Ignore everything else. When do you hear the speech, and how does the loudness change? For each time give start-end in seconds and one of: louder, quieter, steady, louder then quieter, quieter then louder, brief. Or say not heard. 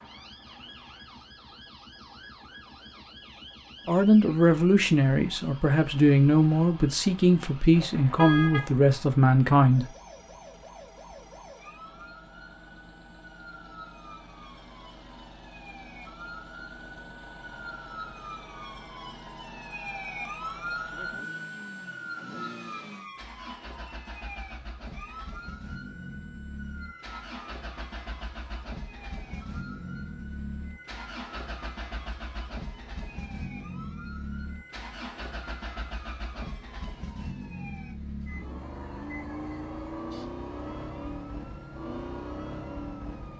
3.9-9.8 steady.